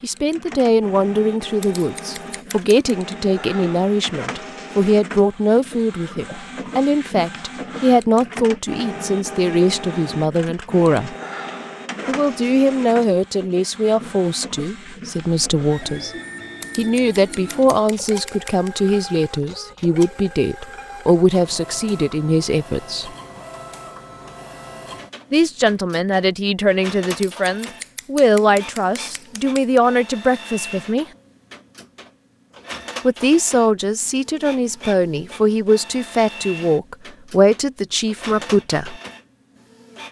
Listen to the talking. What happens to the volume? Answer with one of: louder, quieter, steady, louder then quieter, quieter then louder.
steady.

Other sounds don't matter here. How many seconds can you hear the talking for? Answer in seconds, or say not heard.
33 s.